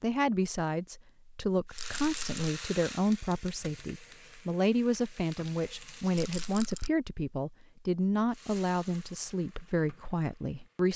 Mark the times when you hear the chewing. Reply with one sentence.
You can't hear the chewing here.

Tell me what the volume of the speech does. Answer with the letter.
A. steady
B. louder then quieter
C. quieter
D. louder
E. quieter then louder
A.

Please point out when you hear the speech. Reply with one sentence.
You can hear the speech from 0.0 to 10.9 s.